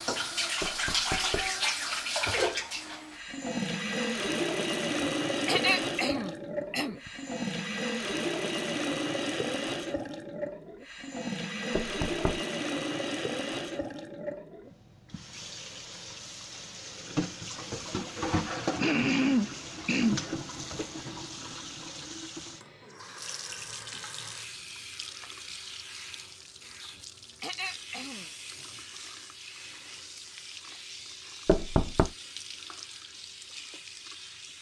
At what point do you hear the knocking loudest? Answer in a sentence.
The volume of the knocking peaks at 32 seconds.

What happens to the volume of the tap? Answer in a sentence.
The volume of the tap goes down.